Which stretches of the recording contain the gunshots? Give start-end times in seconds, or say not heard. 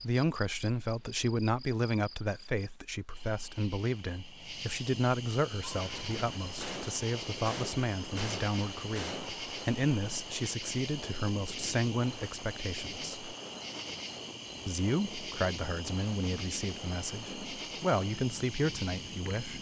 5.6-9.5.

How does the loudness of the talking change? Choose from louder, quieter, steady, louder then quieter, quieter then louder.
steady.